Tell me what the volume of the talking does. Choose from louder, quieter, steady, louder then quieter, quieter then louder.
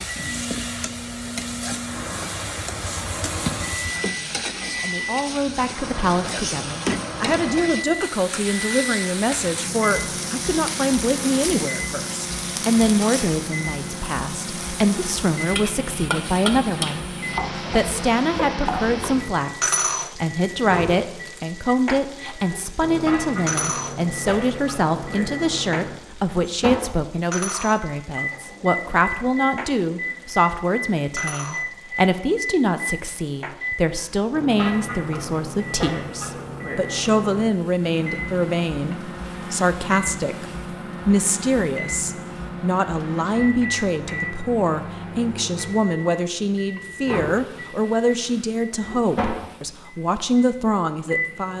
steady.